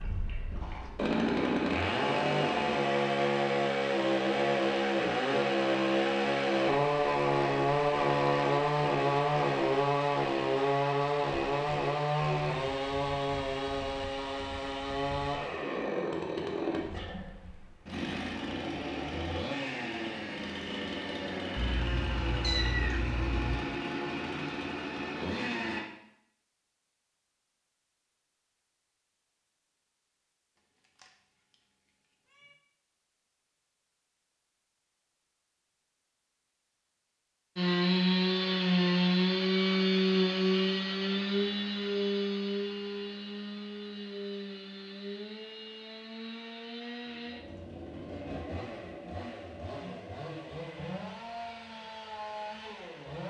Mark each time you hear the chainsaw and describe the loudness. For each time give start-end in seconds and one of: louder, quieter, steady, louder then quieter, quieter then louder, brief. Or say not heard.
0.0-25.9 quieter
37.5-53.2 quieter.